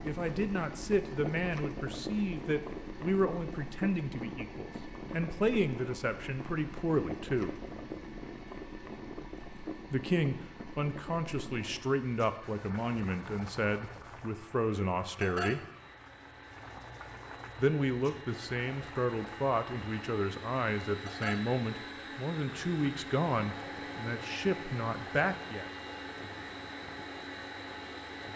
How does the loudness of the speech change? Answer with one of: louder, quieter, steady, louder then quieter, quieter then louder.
steady.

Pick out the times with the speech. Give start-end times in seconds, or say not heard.
0.0-7.6, 9.9-15.6, 17.6-25.7.